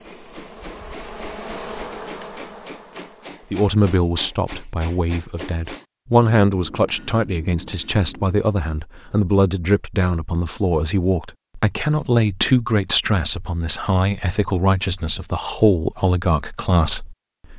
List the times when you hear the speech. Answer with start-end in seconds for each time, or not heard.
3.5-17.5.